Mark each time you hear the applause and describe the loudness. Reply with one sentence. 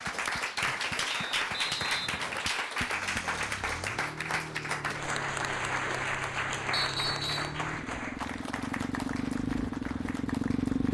The applause can be heard from 0.0 to 10.8 s, getting quieter.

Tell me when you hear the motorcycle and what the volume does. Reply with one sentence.
The motorcycle can be heard from 2.8 to 10.8 s, getting louder.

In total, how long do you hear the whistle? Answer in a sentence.
The whistle can be heard for 2 seconds in total.